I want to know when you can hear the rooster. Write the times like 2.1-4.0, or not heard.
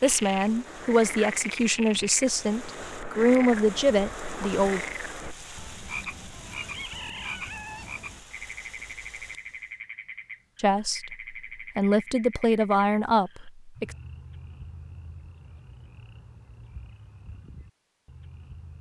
6.6-8.1.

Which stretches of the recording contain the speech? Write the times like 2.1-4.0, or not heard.
0.0-4.8, 10.6-13.8.